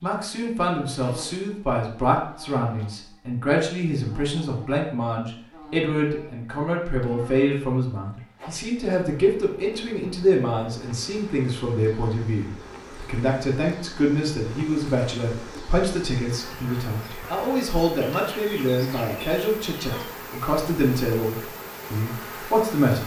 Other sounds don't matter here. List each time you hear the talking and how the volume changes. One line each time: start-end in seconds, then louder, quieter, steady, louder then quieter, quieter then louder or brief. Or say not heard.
0.0-23.0 steady.